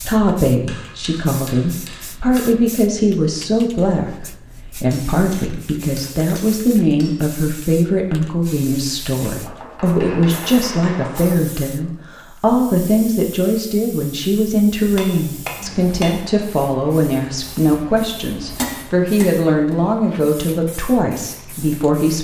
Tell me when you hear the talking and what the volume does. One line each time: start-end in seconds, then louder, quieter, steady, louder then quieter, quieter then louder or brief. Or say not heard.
0.0-22.1 steady.